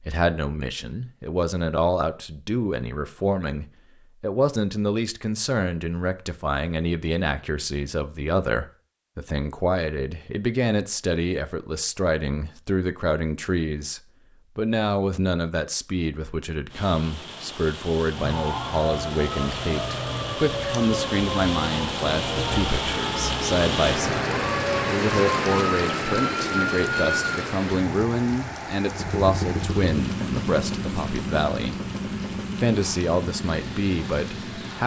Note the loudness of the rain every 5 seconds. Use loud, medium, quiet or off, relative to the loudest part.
off, off, off, medium, loud, loud, medium.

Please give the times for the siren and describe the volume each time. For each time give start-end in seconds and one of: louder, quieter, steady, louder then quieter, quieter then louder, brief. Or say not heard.
18.1-27.3 steady.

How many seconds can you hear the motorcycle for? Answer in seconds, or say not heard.
6 s.